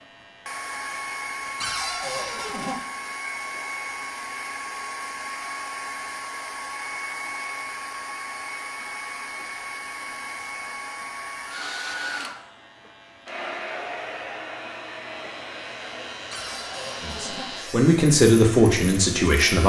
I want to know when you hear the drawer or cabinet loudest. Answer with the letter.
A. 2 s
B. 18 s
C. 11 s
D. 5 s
A.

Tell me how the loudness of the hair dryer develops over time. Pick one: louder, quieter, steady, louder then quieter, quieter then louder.
quieter.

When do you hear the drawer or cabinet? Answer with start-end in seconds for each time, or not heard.
1.6-2.8, 16.3-17.5.